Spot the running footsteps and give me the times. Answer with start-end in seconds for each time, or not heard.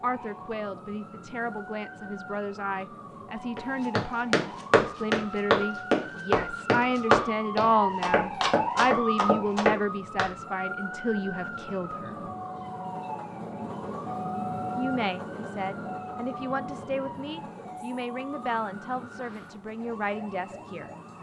3.5-10.3.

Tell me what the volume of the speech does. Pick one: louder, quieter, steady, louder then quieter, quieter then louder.
louder then quieter.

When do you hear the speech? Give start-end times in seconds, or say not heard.
0.0-12.3, 14.8-20.9.